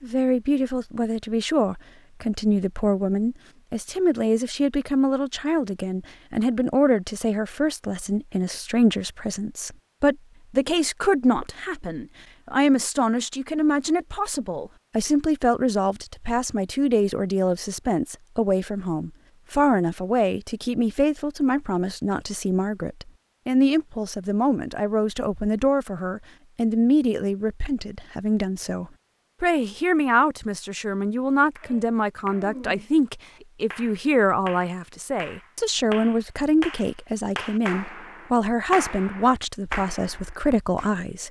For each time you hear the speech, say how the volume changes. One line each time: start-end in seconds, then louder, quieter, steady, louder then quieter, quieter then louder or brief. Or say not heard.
0.0-41.2 steady.